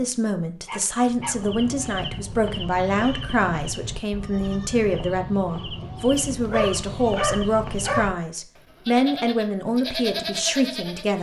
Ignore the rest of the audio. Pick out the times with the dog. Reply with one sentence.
You can hear the dog from 0.7 to 2.0 s and from 6.2 to 8.1 s.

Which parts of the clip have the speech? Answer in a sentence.
The speech can be heard from 0.0 to 11.1 s.